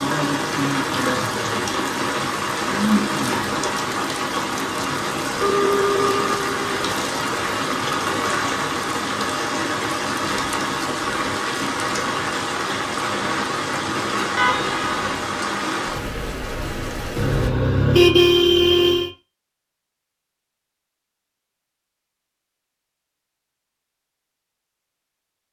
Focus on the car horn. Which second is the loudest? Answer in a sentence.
The loudest moment of the car horn is at 18 seconds.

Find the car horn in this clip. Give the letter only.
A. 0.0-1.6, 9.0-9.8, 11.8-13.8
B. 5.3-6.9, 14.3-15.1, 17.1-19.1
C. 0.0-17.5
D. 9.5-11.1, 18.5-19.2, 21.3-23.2
B.